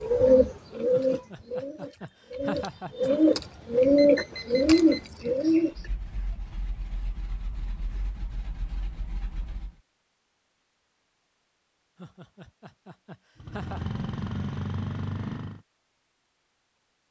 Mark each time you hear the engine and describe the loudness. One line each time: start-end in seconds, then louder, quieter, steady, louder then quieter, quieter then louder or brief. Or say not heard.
5.7-9.8 steady
13.3-15.6 brief.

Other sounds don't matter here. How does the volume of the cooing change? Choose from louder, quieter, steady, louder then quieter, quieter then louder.
quieter then louder.